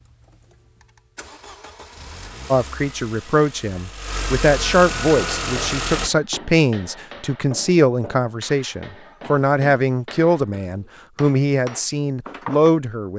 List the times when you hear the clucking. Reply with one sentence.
You can't hear the clucking here.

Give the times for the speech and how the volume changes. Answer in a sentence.
The speech can be heard from 2.5 to 13.1 s, at a steady volume.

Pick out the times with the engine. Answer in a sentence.
The engine can be heard from 0.0 to 6.1 s.